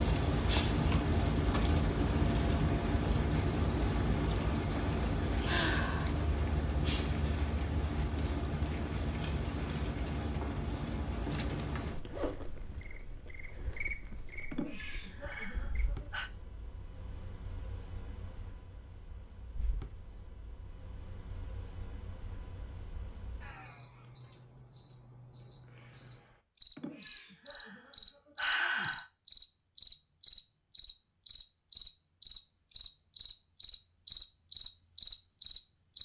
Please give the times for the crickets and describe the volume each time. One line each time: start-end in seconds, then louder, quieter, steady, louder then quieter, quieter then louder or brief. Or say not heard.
0.0-35.9 quieter then louder.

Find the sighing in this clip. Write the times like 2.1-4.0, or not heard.
5.5-6.2, 14.5-16.3, 26.8-29.1.